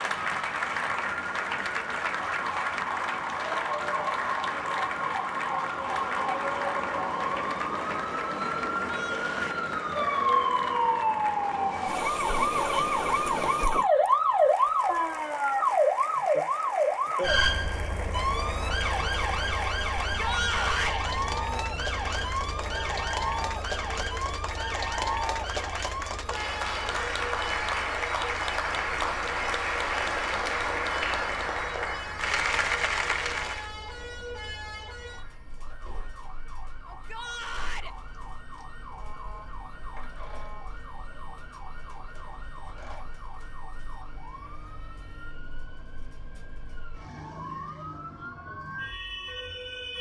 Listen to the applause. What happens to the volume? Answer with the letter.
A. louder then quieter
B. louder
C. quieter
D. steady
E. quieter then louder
E.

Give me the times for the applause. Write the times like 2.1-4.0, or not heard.
0.0-33.7.